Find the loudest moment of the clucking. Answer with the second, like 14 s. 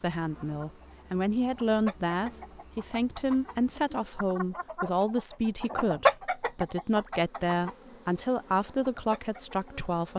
6 s.